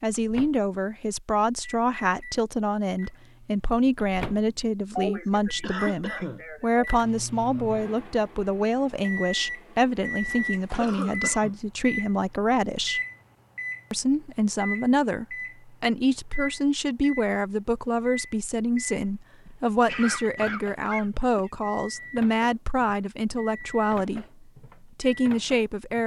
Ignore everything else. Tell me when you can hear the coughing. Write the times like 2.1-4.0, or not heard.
5.0-6.8, 10.8-11.6, 19.4-21.5.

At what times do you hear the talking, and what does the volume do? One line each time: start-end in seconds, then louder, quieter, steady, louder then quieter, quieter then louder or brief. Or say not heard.
0.0-13.0 steady
13.9-26.0 steady.